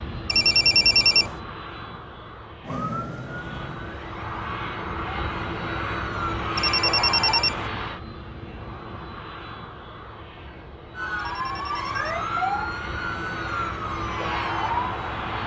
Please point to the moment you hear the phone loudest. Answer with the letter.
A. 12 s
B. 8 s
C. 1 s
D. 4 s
C.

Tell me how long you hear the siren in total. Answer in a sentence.
You can hear the siren for 9 seconds altogether.